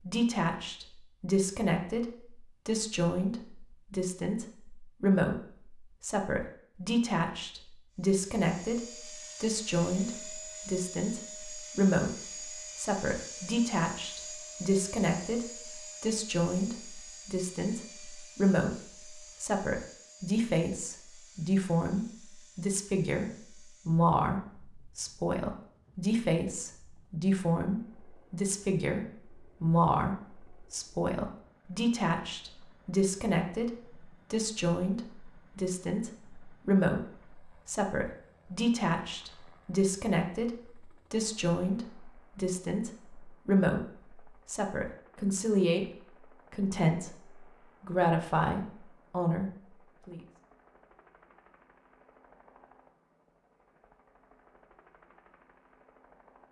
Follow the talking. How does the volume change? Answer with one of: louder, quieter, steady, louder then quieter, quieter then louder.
steady.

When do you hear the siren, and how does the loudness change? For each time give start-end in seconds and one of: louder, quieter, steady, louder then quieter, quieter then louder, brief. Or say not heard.
not heard.